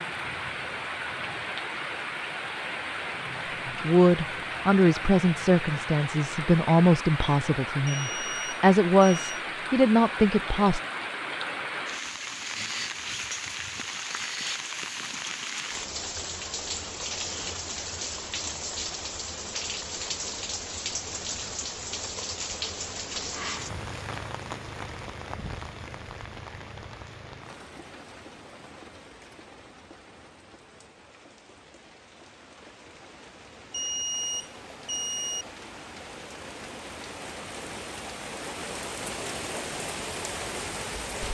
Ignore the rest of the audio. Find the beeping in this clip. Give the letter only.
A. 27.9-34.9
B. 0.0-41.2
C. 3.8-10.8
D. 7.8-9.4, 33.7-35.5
D.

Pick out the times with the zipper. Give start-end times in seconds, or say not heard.
not heard.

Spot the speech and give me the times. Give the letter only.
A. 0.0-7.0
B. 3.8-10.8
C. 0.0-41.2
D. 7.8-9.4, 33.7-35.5
B.